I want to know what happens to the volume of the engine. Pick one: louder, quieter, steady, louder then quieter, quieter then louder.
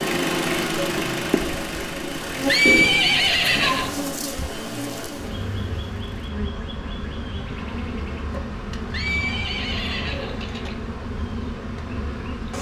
quieter.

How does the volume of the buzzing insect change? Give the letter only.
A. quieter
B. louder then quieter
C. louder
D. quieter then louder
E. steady
E.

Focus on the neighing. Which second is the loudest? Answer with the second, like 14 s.
3 s.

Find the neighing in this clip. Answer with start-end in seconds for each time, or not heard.
2.5-4.0, 8.9-10.8.